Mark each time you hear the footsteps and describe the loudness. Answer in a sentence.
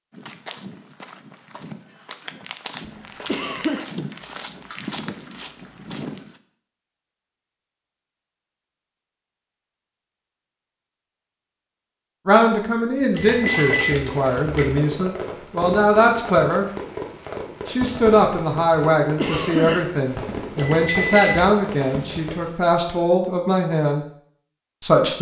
The footsteps can be heard from 0.1 to 6.4 s, getting louder.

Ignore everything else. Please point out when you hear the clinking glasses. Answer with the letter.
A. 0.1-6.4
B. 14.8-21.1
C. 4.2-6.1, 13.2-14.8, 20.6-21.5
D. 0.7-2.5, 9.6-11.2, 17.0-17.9
C.